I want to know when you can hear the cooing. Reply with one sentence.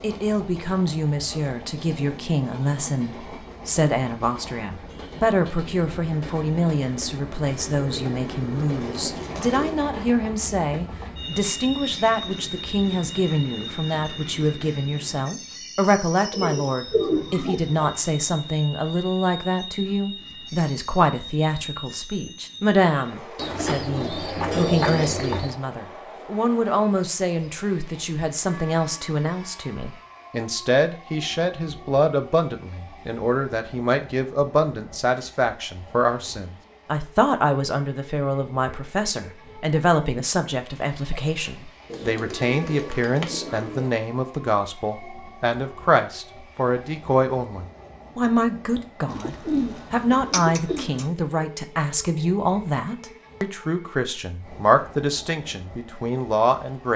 The cooing can be heard from 7.8 to 9.8 s, from 16.3 to 17.8 s, from 23.4 to 25.6 s, from 41.9 to 43.9 s and from 49.0 to 51.1 s.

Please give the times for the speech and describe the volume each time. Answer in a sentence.
You can hear the speech from 0.0 to 56.9 s, at a steady volume.